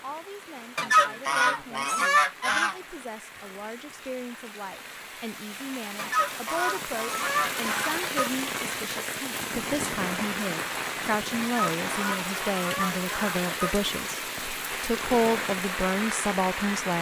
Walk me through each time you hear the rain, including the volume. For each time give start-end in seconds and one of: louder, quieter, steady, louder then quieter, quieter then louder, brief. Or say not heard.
0.0-16.9 louder.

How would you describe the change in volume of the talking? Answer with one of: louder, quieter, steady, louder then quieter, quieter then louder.
louder.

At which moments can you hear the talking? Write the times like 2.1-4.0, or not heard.
0.0-16.9.